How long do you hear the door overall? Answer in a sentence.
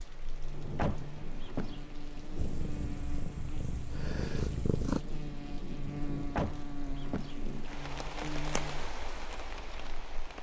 You can hear the door for 2 seconds altogether.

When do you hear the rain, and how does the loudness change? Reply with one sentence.
The rain can be heard from 0.0 to 10.3 s, getting louder.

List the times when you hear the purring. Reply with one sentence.
The purring can be heard from 2.4 to 5.0 s.